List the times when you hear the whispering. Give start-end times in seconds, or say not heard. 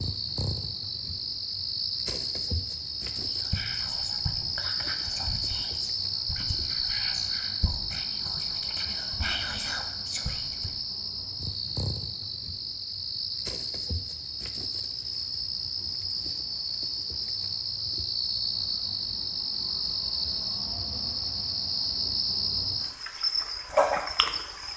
3.1-10.7.